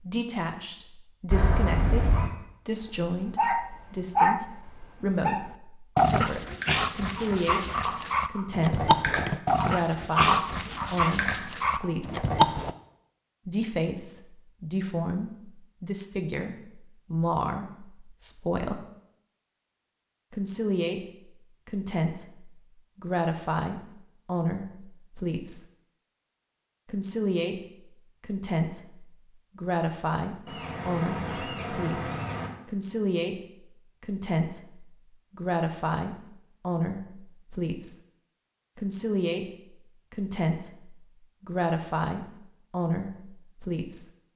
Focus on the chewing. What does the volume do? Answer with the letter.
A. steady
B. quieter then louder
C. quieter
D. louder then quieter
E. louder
D.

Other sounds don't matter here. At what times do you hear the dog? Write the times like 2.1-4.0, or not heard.
2.9-12.8.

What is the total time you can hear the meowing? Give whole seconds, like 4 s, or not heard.
3 s.